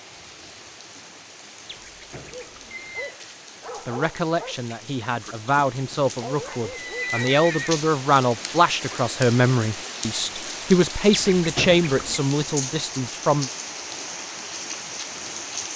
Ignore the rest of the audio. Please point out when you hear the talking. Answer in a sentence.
You can hear the talking from 3.9 to 13.5 s.